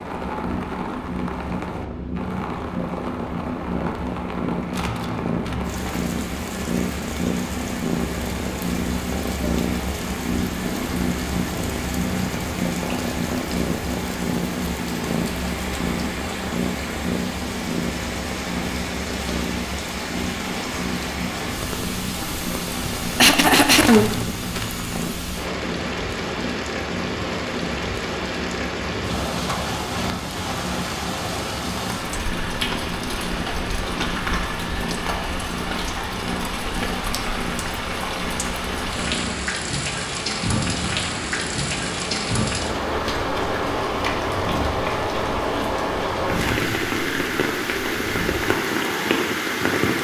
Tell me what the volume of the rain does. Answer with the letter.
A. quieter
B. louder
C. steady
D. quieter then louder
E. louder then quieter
B.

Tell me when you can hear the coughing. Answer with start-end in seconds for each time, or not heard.
23.1-24.2.